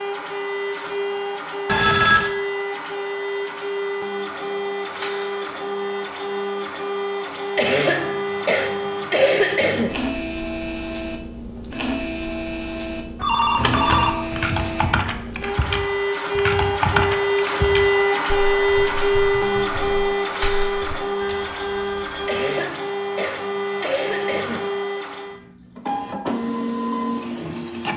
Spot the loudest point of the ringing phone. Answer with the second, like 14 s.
2 s.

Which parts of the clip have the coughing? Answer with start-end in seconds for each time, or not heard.
7.5-9.9, 22.2-24.8.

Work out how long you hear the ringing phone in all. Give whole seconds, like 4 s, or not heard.
4 s.